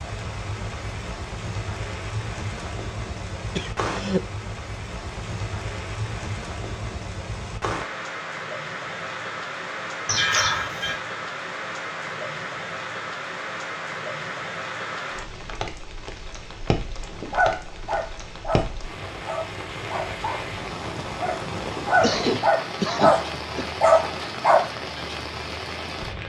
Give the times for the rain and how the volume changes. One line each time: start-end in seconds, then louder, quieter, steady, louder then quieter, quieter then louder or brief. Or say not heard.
0.0-26.2 steady.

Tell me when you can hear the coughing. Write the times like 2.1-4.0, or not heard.
3.5-4.2, 10.1-11.0, 22.0-23.6.